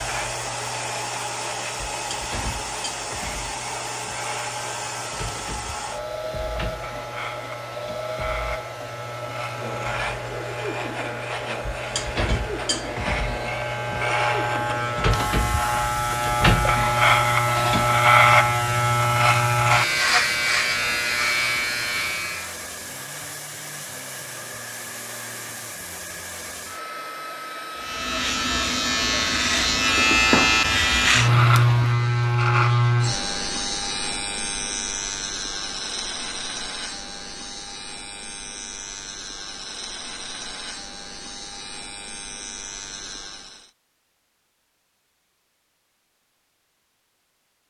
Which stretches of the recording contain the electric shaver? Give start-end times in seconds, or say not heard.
0.0-22.6, 27.8-43.7.